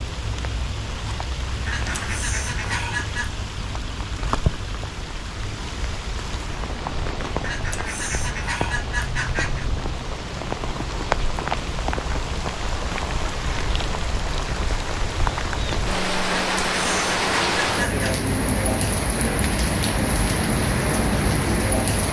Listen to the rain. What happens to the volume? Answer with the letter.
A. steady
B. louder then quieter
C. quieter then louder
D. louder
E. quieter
D.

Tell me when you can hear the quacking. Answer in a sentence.
You can hear the quacking from 1.6 to 3.4 s, from 7.4 to 9.7 s and from 16.3 to 18.1 s.